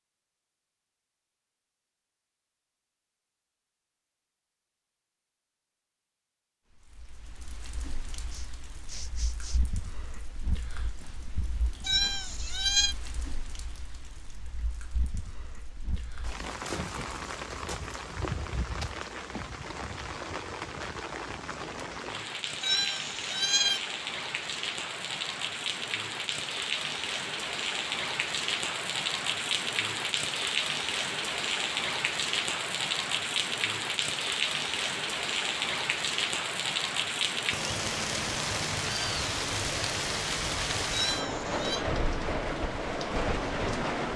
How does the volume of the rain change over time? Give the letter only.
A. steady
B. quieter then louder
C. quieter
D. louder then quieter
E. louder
E.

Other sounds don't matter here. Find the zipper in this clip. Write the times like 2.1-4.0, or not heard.
not heard.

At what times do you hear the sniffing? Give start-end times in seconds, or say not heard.
8.3-9.6.